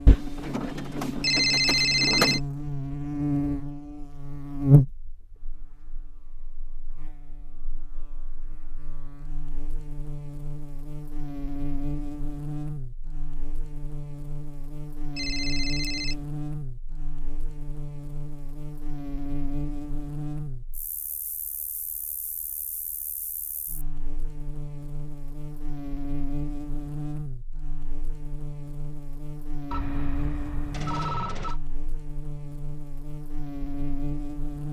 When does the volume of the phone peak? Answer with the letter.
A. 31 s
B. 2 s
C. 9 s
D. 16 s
B.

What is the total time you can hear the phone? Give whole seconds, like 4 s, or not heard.
5 s.